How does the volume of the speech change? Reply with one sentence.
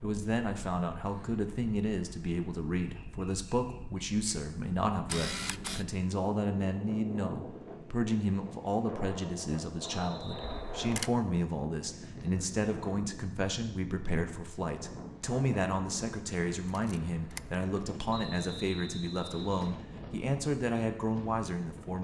The volume of the speech stays about the same.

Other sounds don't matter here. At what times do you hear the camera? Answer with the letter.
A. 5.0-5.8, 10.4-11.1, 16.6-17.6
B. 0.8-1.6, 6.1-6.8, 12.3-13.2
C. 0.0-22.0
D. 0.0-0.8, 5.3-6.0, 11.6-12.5
A.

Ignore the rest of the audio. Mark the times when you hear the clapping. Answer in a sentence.
The clapping can't be heard in this clip.